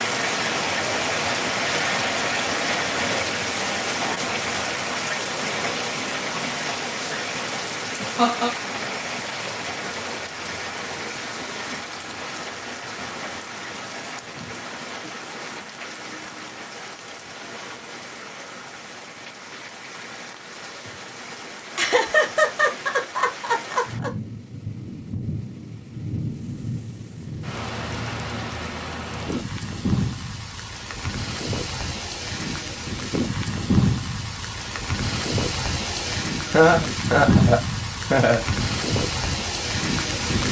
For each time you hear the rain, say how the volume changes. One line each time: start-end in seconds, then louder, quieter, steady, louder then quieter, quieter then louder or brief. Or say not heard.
0.0-40.4 quieter then louder.